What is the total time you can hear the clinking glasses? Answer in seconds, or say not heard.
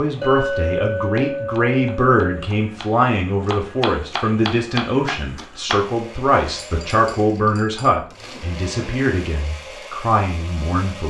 4 s.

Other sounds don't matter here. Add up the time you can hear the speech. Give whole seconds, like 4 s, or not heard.
11 s.